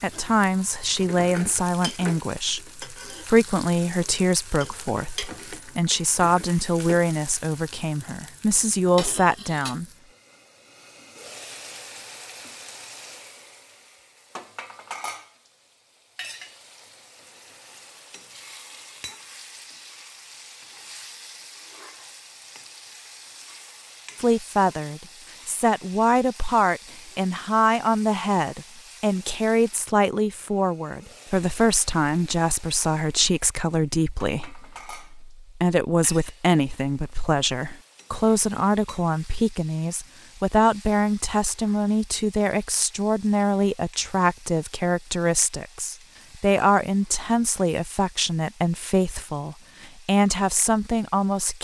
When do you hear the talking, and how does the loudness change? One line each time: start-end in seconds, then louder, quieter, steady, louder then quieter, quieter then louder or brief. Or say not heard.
0.0-9.8 steady
24.1-51.5 steady.